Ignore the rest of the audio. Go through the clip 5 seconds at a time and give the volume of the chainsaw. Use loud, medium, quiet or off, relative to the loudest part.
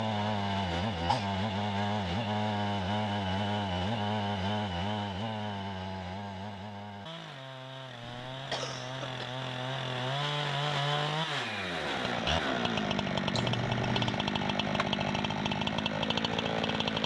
loud, medium, loud, loud.